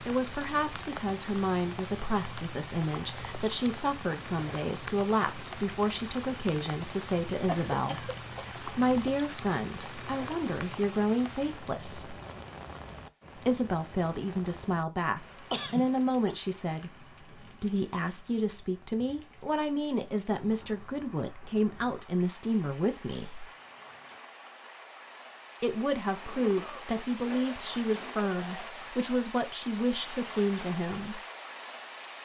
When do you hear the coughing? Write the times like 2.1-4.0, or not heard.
7.5-8.6, 15.5-16.4, 26.2-28.8.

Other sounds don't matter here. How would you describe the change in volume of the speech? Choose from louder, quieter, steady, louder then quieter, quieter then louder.
steady.